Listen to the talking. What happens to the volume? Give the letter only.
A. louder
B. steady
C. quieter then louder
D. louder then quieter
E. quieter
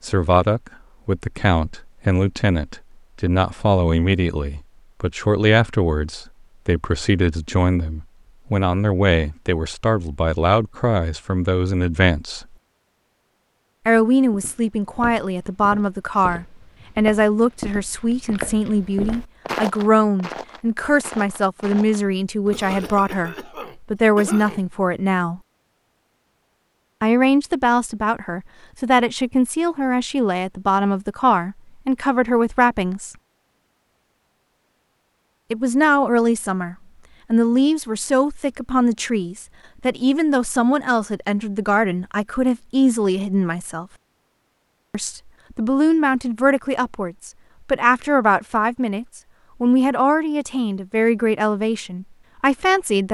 B.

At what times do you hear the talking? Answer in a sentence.
You can hear the talking from 0.0 to 12.4 s, from 13.8 to 25.4 s, from 27.0 to 33.1 s, from 35.5 to 43.9 s and from 44.9 to 53.0 s.